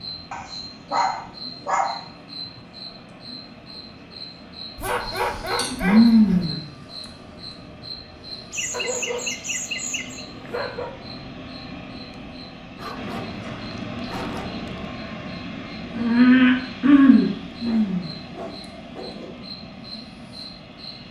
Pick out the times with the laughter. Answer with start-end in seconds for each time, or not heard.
8.5-10.2.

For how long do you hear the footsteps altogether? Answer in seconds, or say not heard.
not heard.